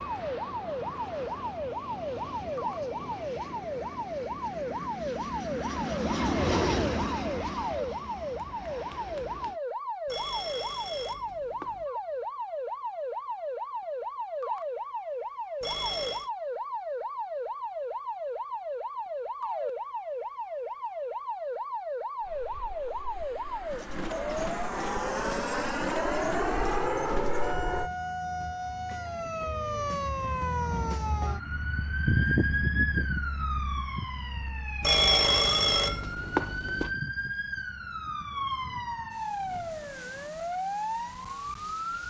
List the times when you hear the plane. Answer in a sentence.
You can hear the plane from 0.0 to 9.6 s and from 22.2 to 27.9 s.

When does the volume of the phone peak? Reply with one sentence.
The loudest moment of the phone is at 35 seconds.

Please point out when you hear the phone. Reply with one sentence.
The phone can be heard from 10.1 to 11.8 s, from 15.6 to 16.3 s and from 34.8 to 36.9 s.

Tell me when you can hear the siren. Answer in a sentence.
You can hear the siren from 0.0 to 42.0 s.